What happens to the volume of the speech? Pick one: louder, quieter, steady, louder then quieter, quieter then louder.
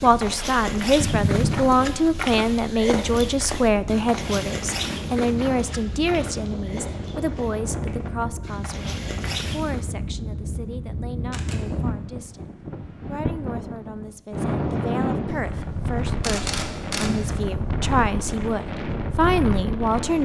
quieter then louder.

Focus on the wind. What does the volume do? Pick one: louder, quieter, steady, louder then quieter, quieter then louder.
louder.